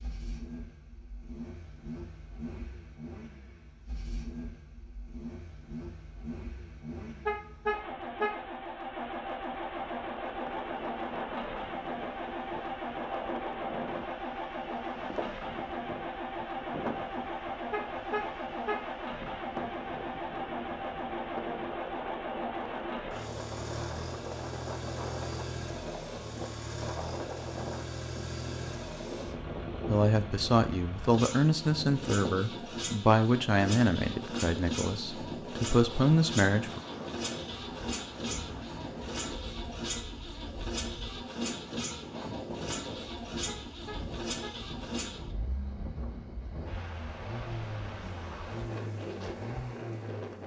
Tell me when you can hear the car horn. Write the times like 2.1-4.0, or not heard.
7.2-8.4, 17.7-18.9, 43.5-44.5.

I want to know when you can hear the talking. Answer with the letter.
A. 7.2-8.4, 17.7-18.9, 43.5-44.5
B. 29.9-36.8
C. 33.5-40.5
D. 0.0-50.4
B.